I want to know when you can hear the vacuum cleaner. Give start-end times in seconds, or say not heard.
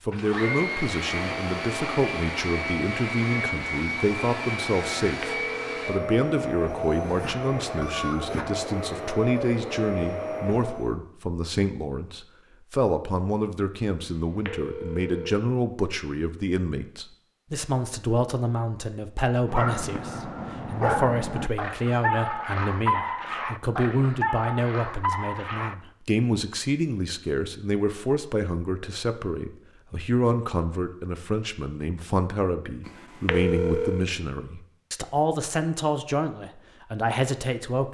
0.1-10.9.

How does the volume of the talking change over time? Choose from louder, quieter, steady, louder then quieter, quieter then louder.
steady.